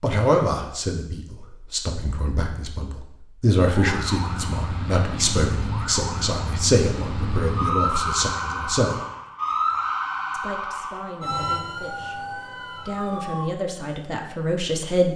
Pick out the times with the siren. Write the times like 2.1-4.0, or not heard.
3.6-13.5.